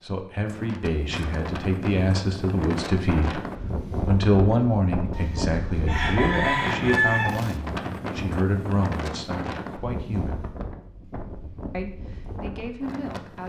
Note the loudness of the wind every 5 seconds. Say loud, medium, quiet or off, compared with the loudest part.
loud, loud, medium.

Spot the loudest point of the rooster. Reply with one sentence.
The volume of the rooster peaks at 7 seconds.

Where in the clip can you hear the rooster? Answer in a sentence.
The rooster can be heard from 5.1 to 7.5 s.